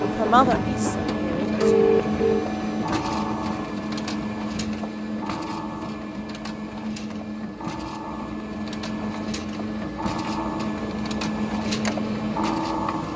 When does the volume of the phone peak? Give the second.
2 s.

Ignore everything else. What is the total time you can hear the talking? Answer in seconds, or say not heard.
2 s.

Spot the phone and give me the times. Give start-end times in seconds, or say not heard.
0.0-2.5.